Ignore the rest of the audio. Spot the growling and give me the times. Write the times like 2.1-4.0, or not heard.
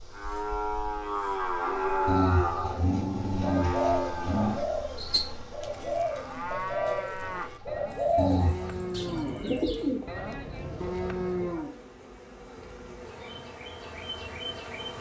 2.0-4.6, 8.2-8.8.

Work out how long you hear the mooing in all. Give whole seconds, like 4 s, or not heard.
12 s.